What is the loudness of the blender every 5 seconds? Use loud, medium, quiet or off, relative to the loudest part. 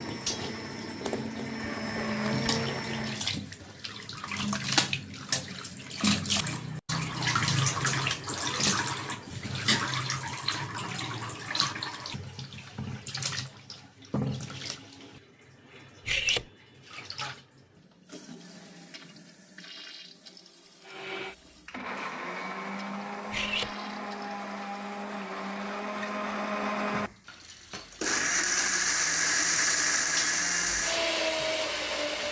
medium, off, off, off, medium, loud, loud.